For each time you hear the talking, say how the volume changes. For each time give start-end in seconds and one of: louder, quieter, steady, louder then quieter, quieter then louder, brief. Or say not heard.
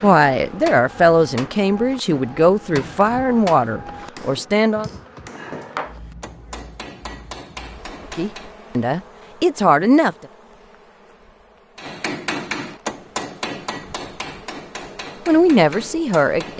0.0-4.9 quieter
8.2-10.2 brief
15.2-16.5 brief.